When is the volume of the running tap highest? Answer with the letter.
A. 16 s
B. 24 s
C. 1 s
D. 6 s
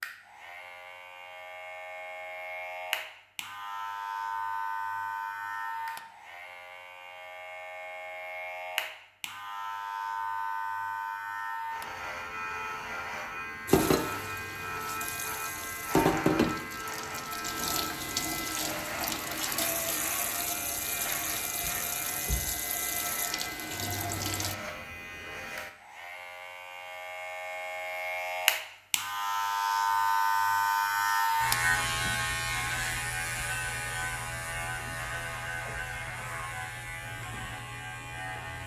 A.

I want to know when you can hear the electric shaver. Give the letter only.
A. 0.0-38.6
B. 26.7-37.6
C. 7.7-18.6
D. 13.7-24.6
A.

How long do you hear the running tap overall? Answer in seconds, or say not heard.
11 s.